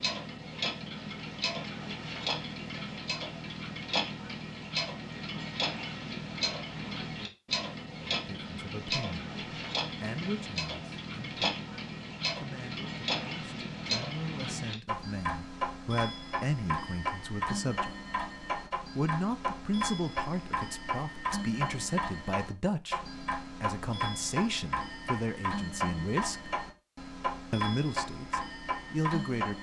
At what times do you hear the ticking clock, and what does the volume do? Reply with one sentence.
You can hear the ticking clock from 0.0 to 29.5 s, at a steady volume.